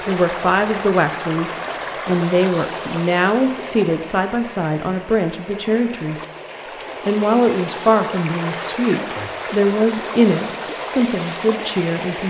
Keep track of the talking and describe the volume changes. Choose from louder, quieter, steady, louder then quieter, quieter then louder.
steady.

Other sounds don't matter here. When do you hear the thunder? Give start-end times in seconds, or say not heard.
not heard.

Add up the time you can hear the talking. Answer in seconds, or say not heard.
11 s.